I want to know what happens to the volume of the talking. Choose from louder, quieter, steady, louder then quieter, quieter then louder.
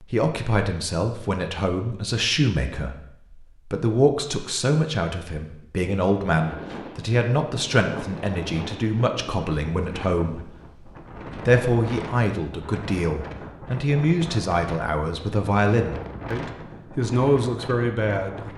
steady.